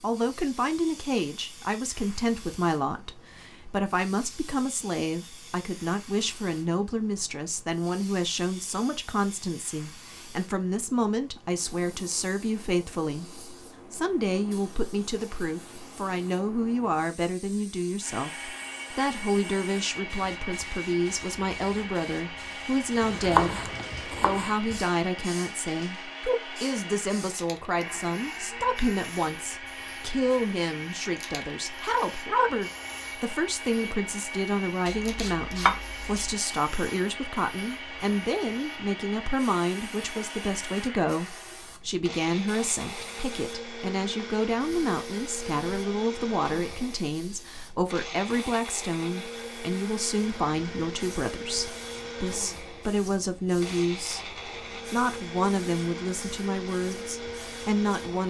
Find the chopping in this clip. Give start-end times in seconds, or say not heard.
23.0-24.8, 34.9-36.4.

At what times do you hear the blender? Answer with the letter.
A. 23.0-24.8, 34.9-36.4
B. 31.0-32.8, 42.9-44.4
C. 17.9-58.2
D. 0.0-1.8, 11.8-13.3
C.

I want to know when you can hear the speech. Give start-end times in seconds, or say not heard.
0.0-54.2, 54.9-58.2.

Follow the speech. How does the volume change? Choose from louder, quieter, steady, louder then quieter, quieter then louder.
steady.